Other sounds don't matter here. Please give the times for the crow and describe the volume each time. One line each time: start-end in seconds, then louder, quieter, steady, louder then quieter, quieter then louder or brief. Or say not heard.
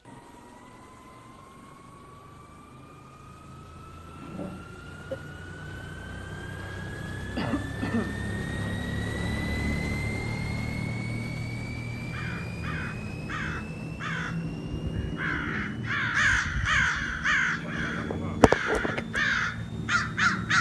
11.9-20.5 louder.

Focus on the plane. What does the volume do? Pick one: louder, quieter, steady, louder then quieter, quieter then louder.
louder then quieter.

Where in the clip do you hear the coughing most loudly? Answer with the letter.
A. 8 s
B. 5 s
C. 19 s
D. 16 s
A.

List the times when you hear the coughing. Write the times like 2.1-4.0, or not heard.
4.1-5.2, 7.3-8.2, 17.6-18.4.